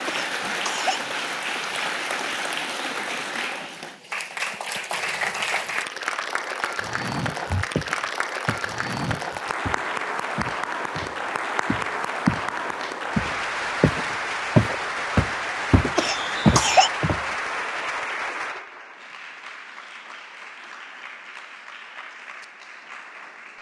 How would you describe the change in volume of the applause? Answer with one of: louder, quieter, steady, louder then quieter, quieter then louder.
quieter.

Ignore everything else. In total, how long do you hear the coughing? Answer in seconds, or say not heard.
2 s.